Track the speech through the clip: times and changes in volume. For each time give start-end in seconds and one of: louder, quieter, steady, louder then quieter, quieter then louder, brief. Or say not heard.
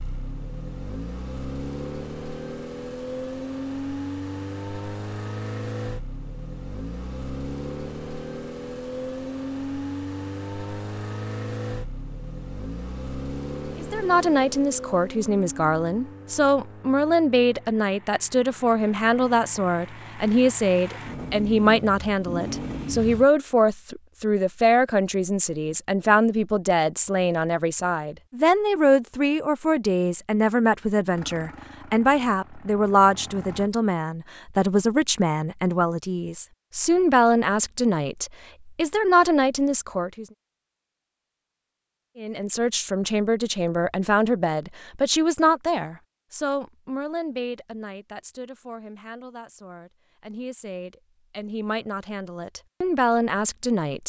13.8-40.2 steady
42.1-54.0 quieter then louder.